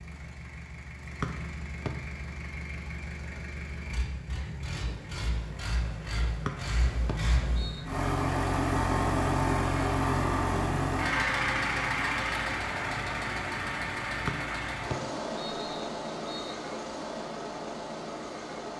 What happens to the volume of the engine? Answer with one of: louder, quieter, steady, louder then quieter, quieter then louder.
louder then quieter.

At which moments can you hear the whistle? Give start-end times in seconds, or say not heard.
1.2-1.9, 6.5-7.8, 14.2-16.6.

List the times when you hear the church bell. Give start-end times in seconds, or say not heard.
not heard.